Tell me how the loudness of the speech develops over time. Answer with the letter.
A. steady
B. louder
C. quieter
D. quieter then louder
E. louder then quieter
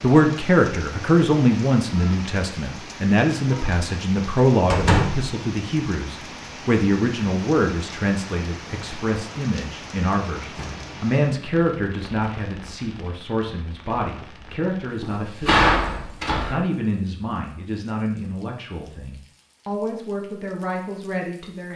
C.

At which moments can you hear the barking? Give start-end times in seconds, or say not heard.
not heard.